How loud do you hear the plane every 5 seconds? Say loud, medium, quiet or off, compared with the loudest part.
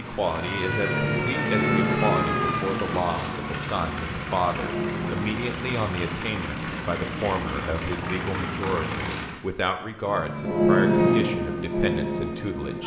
loud, loud, off.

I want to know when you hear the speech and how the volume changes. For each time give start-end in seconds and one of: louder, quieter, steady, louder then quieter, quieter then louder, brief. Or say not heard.
0.0-12.8 steady.